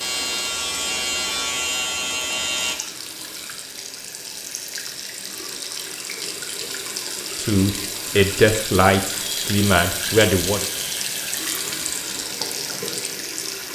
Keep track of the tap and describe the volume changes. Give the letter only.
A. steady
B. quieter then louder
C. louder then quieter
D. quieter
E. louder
E.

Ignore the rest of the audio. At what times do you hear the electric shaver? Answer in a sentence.
You can hear the electric shaver from 0.0 to 2.8 s.